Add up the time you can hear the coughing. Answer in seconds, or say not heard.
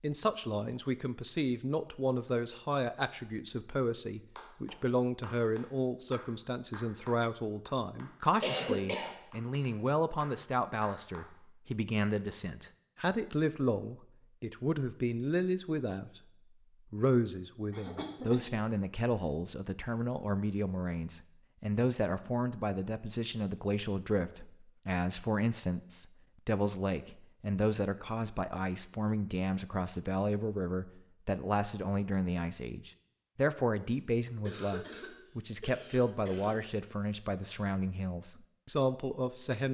5 s.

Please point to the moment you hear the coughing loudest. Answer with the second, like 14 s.
9 s.